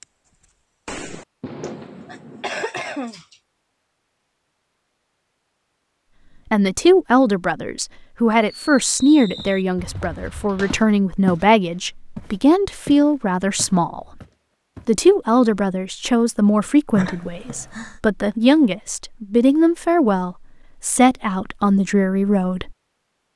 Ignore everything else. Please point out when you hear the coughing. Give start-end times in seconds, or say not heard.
1.6-3.4, 16.9-18.0.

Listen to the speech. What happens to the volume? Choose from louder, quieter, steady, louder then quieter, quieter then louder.
steady.